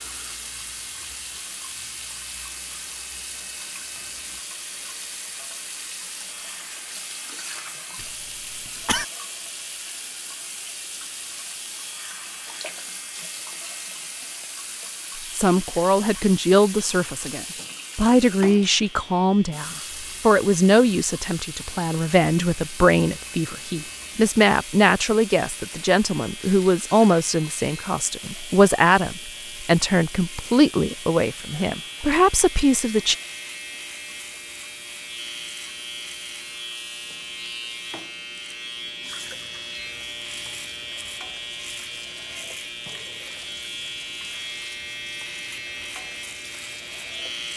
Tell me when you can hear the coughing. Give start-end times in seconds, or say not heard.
8.0-9.1.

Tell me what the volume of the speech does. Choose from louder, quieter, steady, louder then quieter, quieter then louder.
steady.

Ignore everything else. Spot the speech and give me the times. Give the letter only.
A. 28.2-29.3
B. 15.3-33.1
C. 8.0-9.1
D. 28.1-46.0
B.